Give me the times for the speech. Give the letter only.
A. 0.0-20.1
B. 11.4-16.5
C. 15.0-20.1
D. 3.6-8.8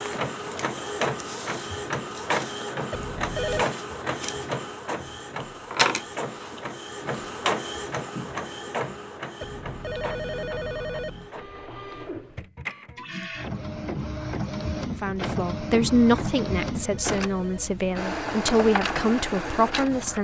C.